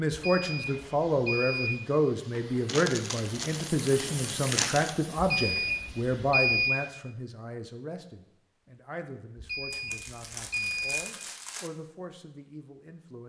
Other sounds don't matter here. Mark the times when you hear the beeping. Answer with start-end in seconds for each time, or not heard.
0.1-1.8, 5.2-6.8, 9.3-11.0.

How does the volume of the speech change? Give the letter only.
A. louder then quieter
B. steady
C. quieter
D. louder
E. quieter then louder
C.